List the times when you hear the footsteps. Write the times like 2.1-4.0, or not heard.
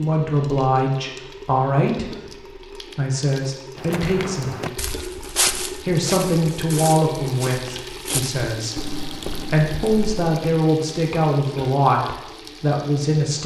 3.8-10.3.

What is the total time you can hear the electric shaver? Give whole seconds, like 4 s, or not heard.
not heard.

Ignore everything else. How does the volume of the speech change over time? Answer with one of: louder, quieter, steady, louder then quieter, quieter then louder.
steady.